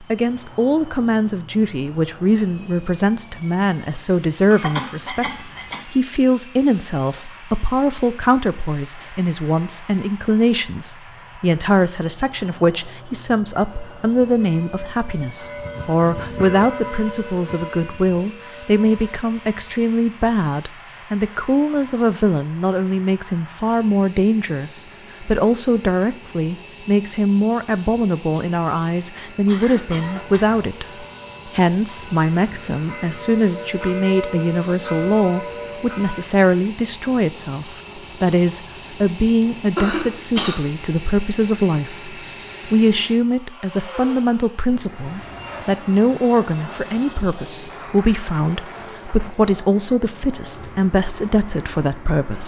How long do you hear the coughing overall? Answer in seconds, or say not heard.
3 s.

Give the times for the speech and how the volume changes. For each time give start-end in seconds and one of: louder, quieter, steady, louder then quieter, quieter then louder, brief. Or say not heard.
0.0-52.4 steady.